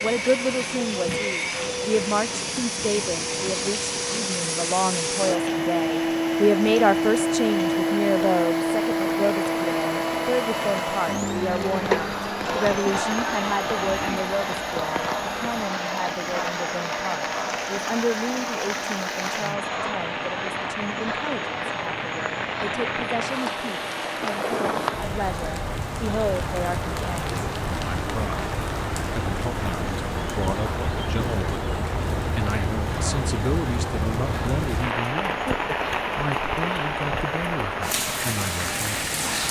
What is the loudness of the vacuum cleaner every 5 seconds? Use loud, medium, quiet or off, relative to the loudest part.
medium, loud, loud, medium, medium, quiet, quiet, quiet.